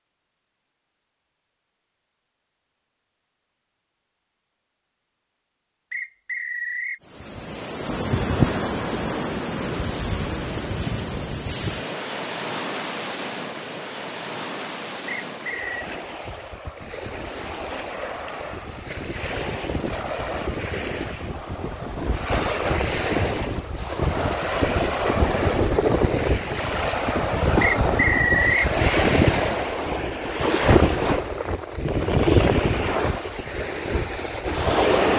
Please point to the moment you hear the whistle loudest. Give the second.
28 s.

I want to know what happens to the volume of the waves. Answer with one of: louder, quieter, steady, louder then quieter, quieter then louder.
quieter then louder.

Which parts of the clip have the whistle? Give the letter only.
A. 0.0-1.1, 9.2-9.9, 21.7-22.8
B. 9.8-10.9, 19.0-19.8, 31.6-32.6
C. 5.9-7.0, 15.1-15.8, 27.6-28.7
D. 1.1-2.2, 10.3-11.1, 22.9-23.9
C.